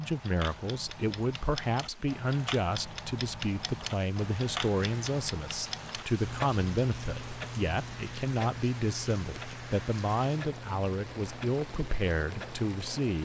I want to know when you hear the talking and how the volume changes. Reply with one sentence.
The talking can be heard from 0.0 to 13.2 s, at a steady volume.